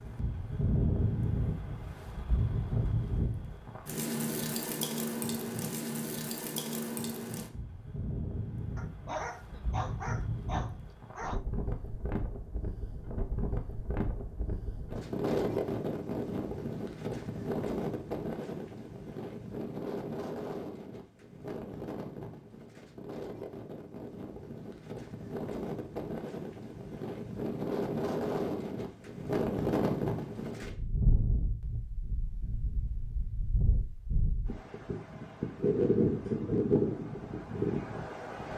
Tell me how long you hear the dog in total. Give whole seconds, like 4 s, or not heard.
3 s.